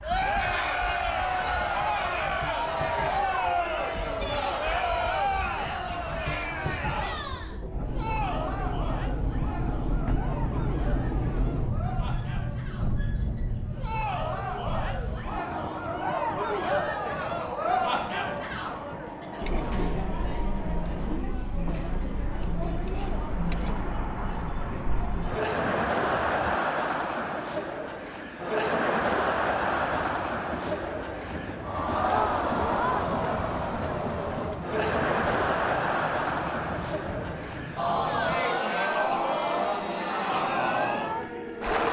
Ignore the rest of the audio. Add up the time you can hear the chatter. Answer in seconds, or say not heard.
42 s.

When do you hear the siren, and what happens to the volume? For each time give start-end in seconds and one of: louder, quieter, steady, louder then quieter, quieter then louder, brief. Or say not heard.
not heard.